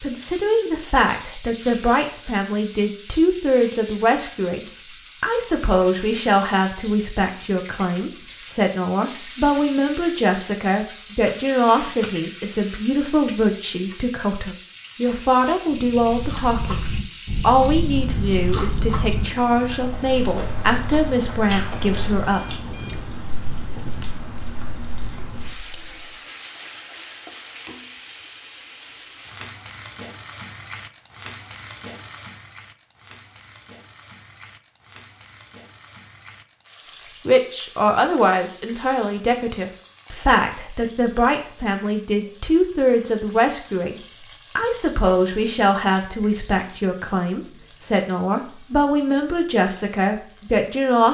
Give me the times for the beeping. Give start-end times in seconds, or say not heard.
22.2-24.2.